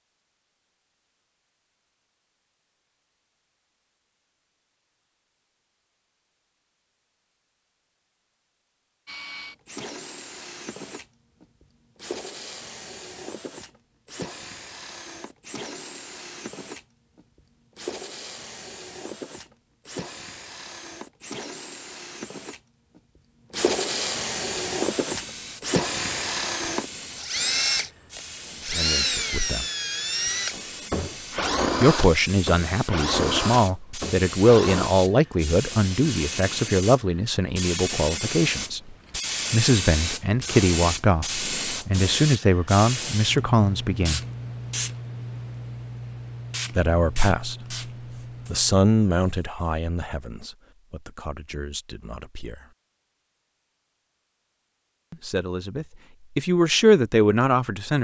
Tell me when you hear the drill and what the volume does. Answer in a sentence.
You can hear the drill from 9.1 to 34.9 s, getting louder.